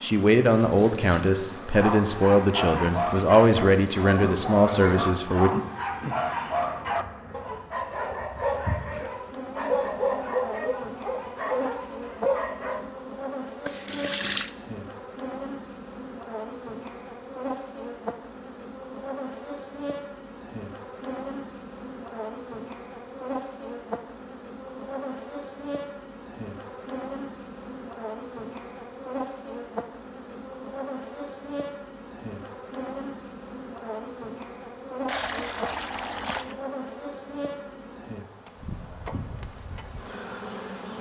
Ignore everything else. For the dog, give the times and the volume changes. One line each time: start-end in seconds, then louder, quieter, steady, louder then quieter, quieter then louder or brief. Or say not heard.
1.6-12.9 steady.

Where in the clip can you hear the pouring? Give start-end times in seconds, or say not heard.
13.7-14.6, 35.0-36.5.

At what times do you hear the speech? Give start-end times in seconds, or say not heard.
0.0-5.5.